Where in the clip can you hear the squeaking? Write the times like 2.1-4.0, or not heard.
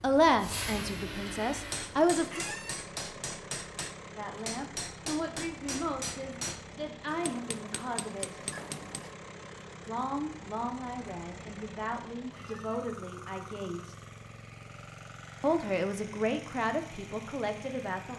2.3-2.9, 8.5-9.1, 12.3-12.8.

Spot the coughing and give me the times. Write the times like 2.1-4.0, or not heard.
not heard.